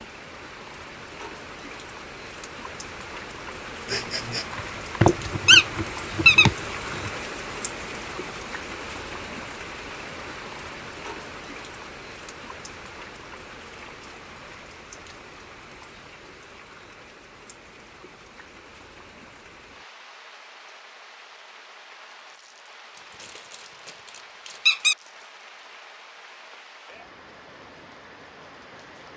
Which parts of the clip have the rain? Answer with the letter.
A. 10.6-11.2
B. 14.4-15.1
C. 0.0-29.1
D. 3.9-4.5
C.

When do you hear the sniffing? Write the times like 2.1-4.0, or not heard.
3.9-4.5.